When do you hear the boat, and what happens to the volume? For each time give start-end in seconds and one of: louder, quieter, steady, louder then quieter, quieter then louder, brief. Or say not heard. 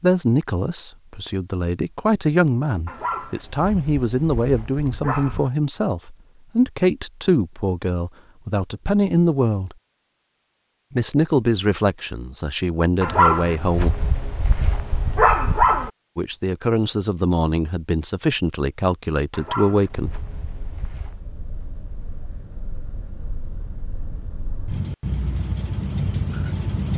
19.9-26.9 louder.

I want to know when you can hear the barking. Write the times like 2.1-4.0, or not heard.
2.9-5.5, 13.0-15.9, 19.3-21.2.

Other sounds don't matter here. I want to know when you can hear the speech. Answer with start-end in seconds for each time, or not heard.
0.0-9.8, 10.9-13.9, 16.1-20.2.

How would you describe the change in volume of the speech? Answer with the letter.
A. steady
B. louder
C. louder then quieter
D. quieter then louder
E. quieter
A.